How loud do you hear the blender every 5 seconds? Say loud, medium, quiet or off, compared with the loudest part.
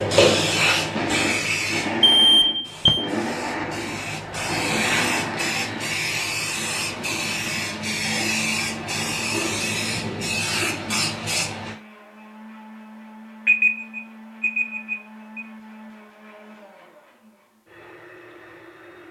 loud, medium, quiet, quiet.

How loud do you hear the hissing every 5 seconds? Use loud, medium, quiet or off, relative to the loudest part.
loud, loud, loud, off.